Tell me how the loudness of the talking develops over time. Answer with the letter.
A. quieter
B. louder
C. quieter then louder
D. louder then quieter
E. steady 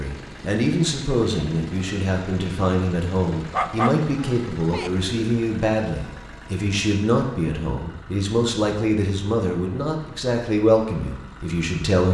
E.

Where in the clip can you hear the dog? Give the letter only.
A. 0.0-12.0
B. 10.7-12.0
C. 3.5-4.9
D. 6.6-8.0
C.